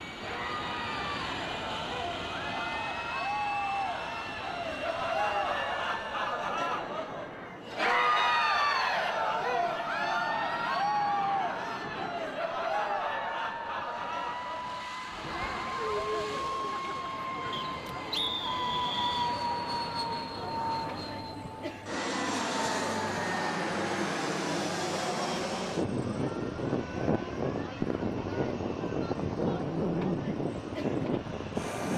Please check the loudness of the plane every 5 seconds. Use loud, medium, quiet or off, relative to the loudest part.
medium, quiet, medium, loud, loud, loud, loud.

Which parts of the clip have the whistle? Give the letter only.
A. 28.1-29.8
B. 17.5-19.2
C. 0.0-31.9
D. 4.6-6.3
B.